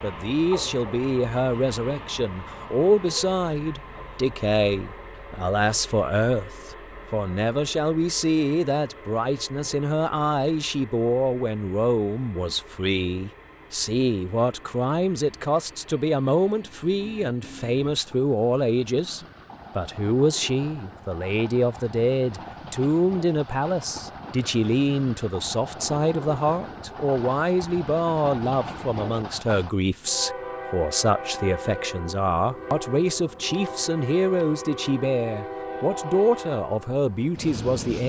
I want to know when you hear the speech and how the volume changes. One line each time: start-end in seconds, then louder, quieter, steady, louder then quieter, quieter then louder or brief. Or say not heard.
0.0-38.0 steady.